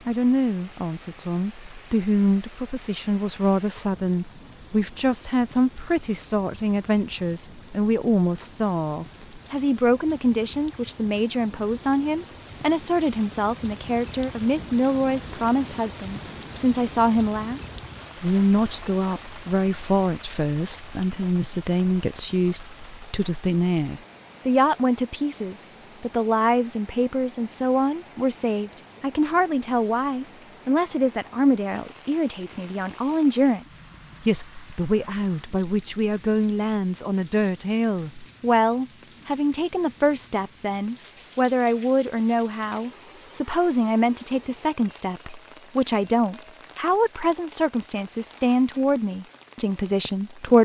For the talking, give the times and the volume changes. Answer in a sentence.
You can hear the talking from 0.1 to 50.6 s, at a steady volume.